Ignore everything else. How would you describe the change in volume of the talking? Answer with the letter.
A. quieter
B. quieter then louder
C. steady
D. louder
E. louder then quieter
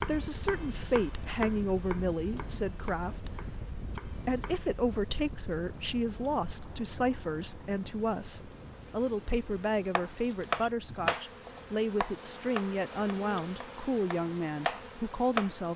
C.